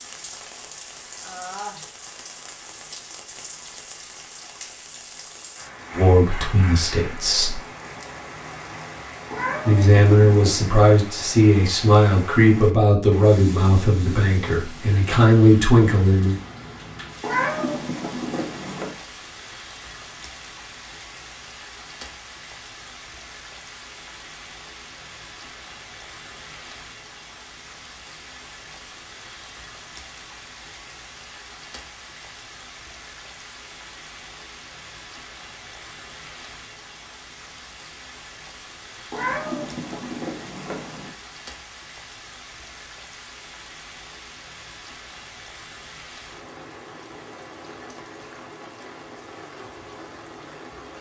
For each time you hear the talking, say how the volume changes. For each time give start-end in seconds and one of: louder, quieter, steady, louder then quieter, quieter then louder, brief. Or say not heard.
5.9-7.6 brief
9.7-16.4 quieter then louder.